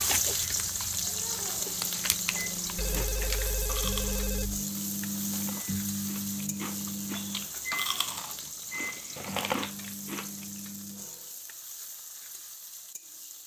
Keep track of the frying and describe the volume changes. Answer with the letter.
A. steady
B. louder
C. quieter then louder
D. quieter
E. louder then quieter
D.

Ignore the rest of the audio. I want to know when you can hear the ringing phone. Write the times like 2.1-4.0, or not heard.
2.8-4.7, 7.1-7.8.